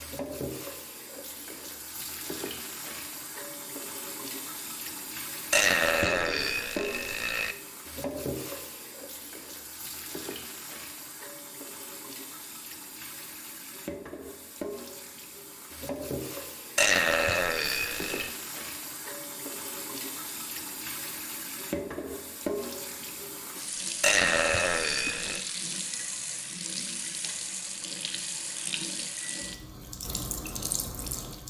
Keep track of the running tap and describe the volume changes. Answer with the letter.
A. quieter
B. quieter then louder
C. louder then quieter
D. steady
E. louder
D.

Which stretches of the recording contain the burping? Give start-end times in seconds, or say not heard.
5.5-7.5, 16.8-18.3, 24.0-25.4.